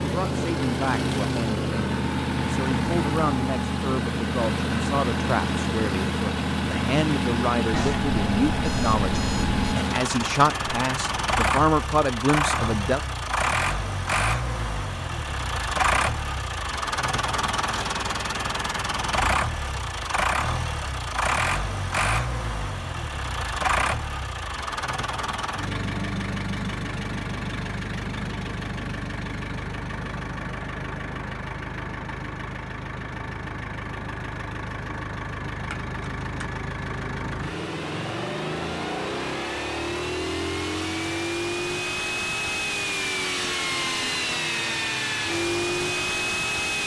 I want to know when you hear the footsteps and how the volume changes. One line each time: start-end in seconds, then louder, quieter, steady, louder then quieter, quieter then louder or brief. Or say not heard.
not heard.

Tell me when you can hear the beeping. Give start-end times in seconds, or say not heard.
7.7-9.7.